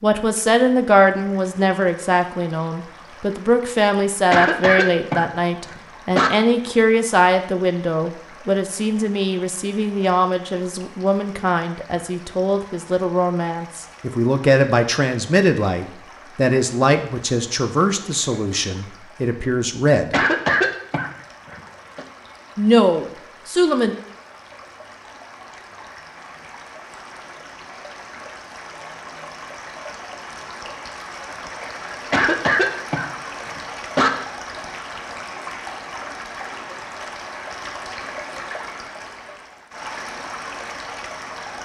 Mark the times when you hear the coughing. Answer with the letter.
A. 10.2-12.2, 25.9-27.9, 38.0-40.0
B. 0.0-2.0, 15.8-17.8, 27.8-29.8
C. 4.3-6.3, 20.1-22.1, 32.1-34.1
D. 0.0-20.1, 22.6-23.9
C.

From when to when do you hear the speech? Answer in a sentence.
You can hear the speech from 0.0 to 20.1 s and from 22.6 to 23.9 s.